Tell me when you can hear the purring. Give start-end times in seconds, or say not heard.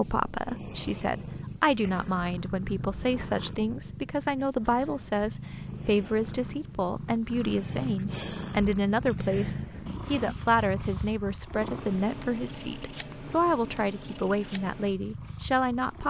0.0-16.0.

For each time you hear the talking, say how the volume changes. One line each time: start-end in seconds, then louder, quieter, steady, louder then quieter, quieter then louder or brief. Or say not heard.
0.0-16.0 steady.